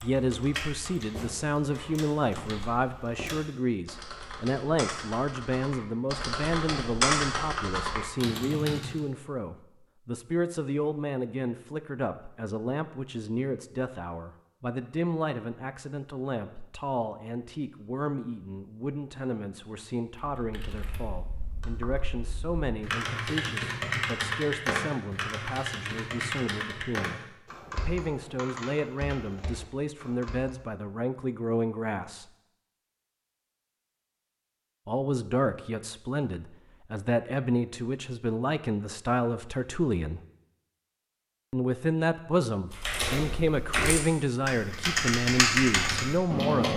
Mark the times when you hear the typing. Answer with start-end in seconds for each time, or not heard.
0.0-8.9, 20.1-30.6, 42.7-46.7.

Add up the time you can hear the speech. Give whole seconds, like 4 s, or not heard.
43 s.